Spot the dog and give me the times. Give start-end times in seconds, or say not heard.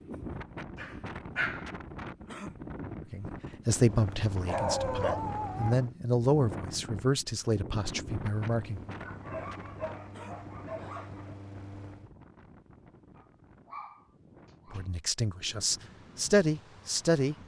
0.8-1.7, 4.4-5.8, 9.0-11.3, 13.2-14.9.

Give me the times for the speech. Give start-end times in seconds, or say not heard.
3.0-8.8, 14.7-17.4.